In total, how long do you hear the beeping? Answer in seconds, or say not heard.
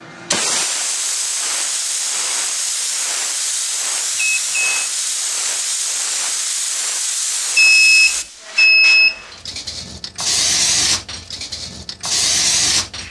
2 s.